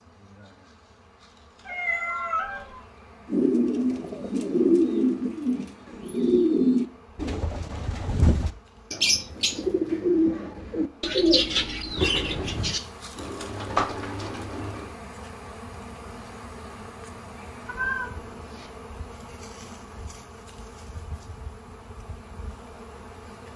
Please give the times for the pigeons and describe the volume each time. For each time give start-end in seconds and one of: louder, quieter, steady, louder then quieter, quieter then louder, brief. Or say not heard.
3.3-14.9 quieter.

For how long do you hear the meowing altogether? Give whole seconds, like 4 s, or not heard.
3 s.